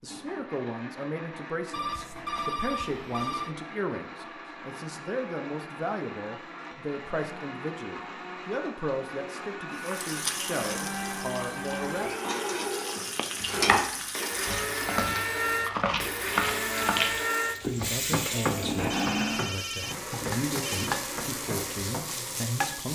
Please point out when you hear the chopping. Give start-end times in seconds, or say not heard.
13.3-22.1.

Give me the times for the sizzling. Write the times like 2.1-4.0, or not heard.
9.7-15.1, 16.4-22.9.